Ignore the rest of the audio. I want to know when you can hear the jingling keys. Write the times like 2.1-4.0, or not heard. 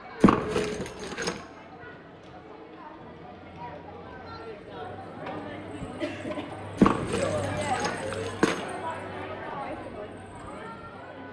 0.2-1.4, 6.8-8.7.